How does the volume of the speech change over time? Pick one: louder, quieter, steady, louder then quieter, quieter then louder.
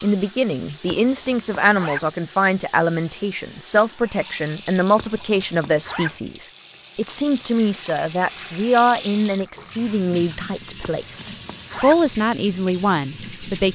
steady.